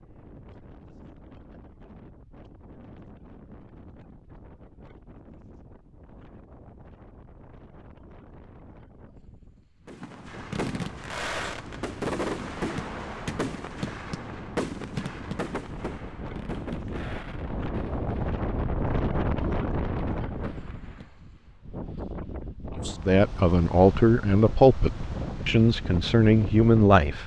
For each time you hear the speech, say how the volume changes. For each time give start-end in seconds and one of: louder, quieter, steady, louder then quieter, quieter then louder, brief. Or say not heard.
22.9-27.2 quieter then louder.